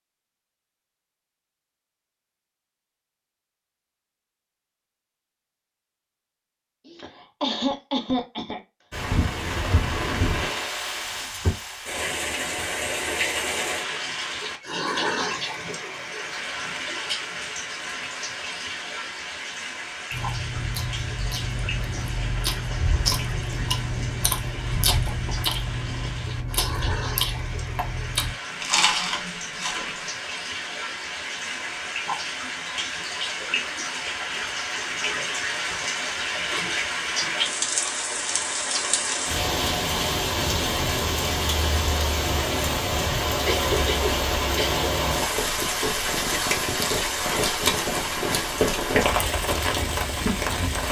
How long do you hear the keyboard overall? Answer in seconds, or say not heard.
not heard.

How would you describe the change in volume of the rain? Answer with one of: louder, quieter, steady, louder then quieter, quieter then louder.
quieter then louder.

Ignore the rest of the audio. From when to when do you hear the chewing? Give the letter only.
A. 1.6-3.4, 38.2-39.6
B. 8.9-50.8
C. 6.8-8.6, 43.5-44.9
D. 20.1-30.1
D.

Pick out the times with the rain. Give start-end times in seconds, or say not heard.
8.9-50.8.